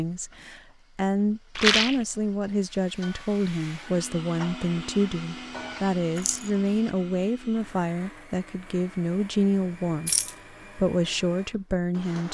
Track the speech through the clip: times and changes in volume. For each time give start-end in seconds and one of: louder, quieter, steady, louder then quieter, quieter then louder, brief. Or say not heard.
0.0-10.1 steady
10.8-12.2 brief.